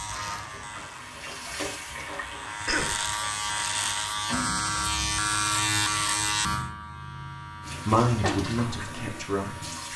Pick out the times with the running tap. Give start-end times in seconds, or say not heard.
0.2-4.5, 7.6-9.9.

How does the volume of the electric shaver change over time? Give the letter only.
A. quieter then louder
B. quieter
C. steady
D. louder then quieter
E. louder
D.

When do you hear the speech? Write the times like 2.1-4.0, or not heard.
7.8-9.9.